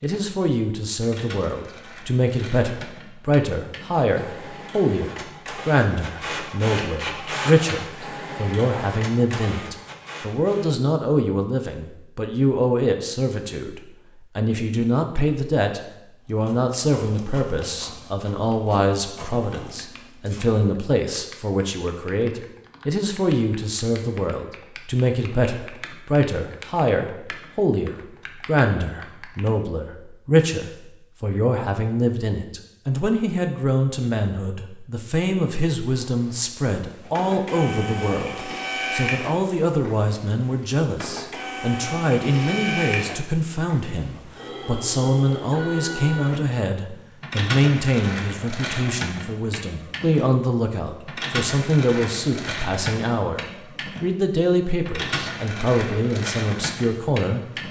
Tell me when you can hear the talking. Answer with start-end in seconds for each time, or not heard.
0.0-53.4, 54.0-57.4.